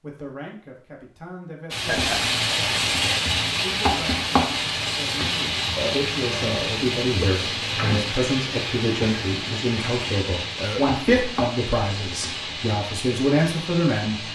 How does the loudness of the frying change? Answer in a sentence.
The volume of the frying goes down.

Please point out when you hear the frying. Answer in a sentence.
The frying can be heard from 1.7 to 14.3 s.